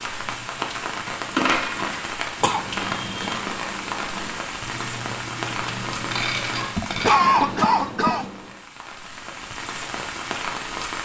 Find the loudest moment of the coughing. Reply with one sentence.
The volume of the coughing peaks at 7 seconds.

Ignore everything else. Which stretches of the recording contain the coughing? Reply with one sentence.
You can hear the coughing from 2.4 to 3.4 s and from 6.8 to 8.2 s.